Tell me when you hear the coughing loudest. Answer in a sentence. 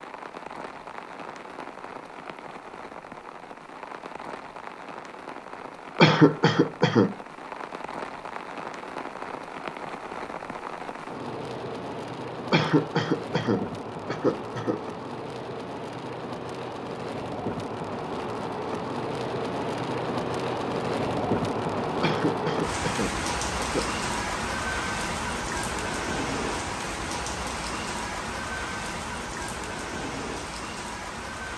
The volume of the coughing peaks at 6 seconds.